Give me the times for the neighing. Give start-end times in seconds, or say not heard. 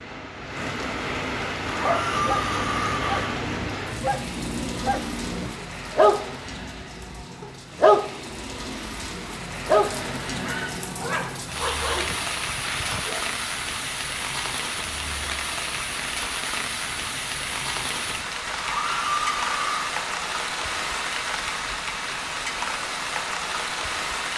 1.6-3.3, 9.8-10.7, 18.6-19.9.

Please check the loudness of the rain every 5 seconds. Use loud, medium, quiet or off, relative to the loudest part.
loud, medium, loud, loud, loud.